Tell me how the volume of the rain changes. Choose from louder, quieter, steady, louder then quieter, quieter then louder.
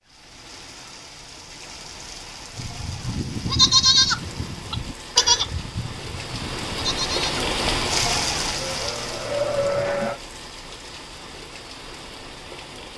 louder then quieter.